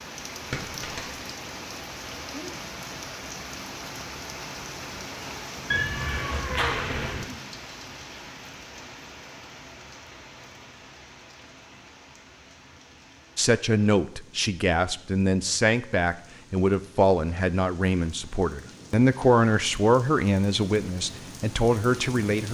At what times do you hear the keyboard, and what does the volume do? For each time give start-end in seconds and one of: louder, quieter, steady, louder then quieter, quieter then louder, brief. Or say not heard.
not heard.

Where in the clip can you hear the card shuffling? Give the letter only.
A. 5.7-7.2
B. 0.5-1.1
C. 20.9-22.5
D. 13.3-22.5
B.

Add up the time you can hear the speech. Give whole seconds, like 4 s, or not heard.
9 s.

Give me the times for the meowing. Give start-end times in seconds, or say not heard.
5.7-7.2.